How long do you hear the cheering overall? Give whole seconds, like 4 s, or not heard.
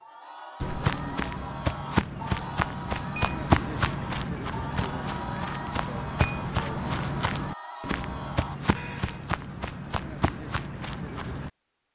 9 s.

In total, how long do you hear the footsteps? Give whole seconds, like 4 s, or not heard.
11 s.